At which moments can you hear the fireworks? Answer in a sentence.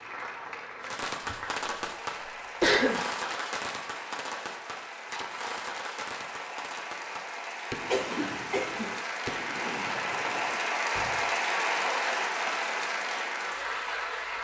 You can hear the fireworks from 0.8 to 11.2 s.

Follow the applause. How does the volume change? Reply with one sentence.
The volume of the applause goes up.